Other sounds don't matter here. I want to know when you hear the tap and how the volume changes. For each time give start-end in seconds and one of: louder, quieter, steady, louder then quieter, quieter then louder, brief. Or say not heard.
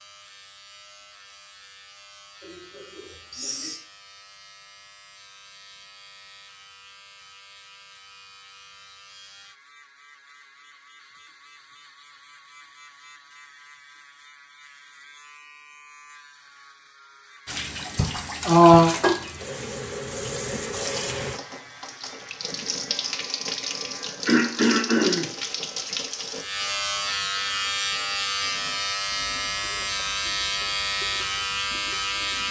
17.4-32.4 quieter.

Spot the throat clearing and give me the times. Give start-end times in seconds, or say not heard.
2.5-3.8, 17.9-18.9, 24.2-25.2.